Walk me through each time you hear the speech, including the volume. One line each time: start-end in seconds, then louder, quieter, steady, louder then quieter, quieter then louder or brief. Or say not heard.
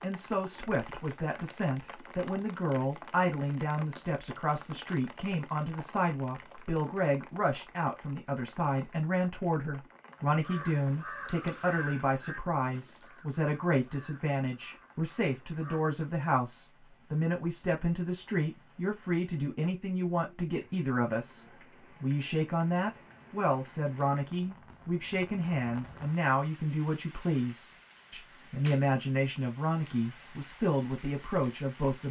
0.0-32.0 steady.